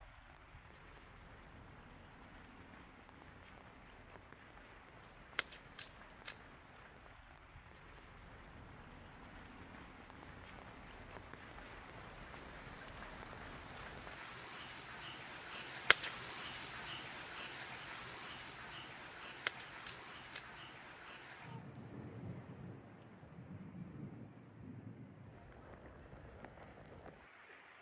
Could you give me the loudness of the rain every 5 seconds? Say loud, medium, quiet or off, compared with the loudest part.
medium, medium, loud, loud, loud, medium.